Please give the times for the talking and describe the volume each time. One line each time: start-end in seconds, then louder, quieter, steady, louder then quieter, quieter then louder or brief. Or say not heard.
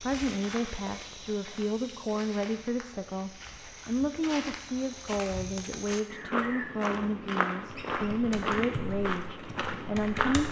0.0-10.4 steady.